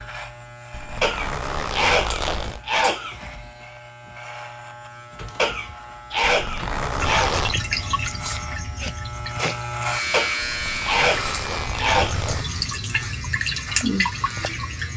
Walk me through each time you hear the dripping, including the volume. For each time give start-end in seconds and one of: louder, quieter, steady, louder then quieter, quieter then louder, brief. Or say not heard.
7.0-14.9 quieter then louder.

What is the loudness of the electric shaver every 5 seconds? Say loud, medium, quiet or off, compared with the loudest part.
medium, loud, loud.